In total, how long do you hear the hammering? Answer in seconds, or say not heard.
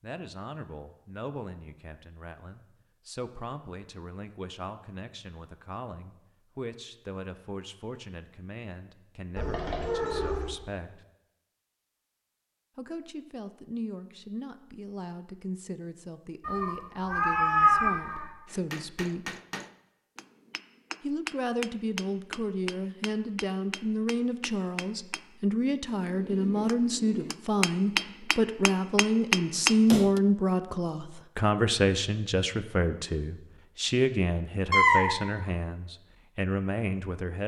12 s.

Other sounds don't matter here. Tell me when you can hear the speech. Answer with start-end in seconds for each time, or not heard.
0.0-11.1, 12.8-19.4, 21.0-37.4.